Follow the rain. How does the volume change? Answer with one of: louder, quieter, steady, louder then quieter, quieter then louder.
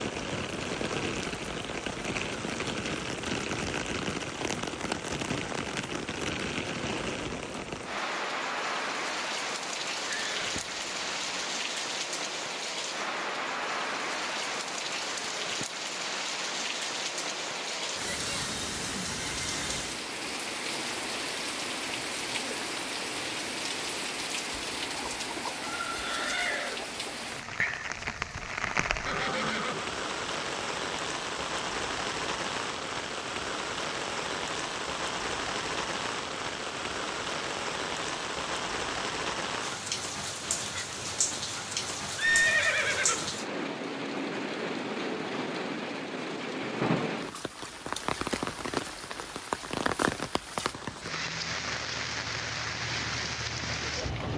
steady.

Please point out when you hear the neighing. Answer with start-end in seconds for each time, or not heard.
10.1-11.4, 29.1-29.9, 42.1-43.4.